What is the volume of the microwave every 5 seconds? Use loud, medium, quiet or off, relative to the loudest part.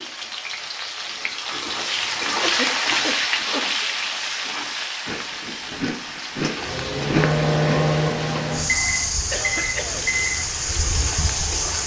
off, loud, loud.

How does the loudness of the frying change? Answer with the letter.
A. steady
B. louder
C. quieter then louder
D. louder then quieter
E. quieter
E.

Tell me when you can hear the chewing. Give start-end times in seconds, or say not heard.
5.0-7.8.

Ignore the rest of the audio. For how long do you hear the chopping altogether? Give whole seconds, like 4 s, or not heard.
not heard.